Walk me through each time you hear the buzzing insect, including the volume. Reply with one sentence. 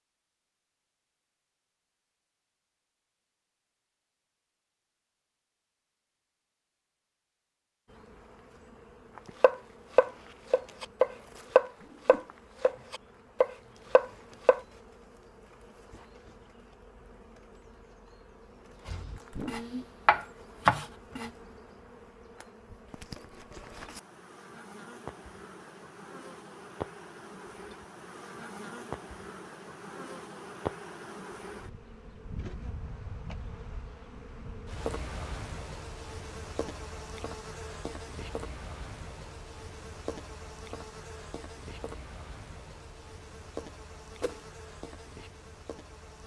You can hear the buzzing insect from 7.8 to 46.2 s, getting louder.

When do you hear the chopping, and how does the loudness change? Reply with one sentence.
The chopping can be heard from 9.4 to 14.6 s, getting quieter then louder; and briefly from 18.9 to 21.3 s.